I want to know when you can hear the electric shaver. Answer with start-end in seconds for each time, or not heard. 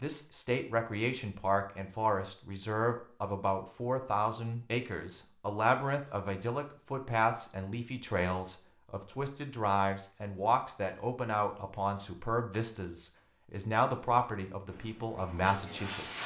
not heard.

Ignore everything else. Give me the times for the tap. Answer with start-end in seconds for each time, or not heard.
14.7-16.2.